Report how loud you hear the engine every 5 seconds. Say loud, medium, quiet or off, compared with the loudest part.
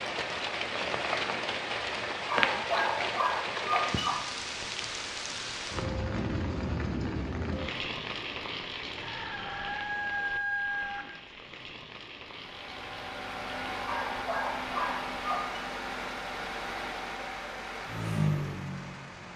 off, off, loud, loud.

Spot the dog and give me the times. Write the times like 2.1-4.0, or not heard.
2.2-4.2, 13.8-15.6.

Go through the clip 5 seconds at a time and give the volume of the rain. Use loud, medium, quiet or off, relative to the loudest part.
loud, loud, quiet, quiet.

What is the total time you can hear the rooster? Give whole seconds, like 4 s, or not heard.
2 s.